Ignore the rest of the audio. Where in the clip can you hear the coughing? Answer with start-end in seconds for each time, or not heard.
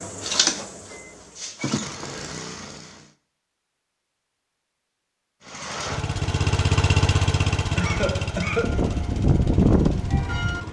1.6-2.3, 7.8-8.8.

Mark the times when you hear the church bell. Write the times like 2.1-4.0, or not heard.
8.6-10.6.